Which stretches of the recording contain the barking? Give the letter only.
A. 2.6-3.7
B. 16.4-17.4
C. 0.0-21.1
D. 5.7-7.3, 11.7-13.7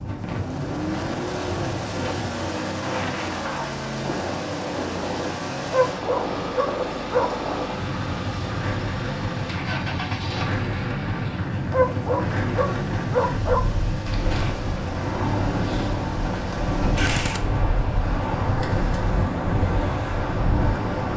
D.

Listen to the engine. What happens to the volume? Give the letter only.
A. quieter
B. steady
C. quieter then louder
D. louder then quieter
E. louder
A.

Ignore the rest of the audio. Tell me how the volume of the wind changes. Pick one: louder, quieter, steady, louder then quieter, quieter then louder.
louder.